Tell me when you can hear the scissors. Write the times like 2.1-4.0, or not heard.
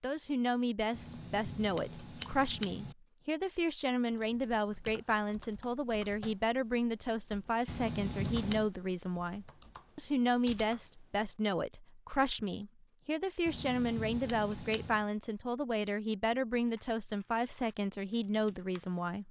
0.9-3.0, 7.7-8.7, 13.4-15.1.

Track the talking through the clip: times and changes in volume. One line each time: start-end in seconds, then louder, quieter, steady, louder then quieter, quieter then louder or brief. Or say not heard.
0.0-19.2 steady.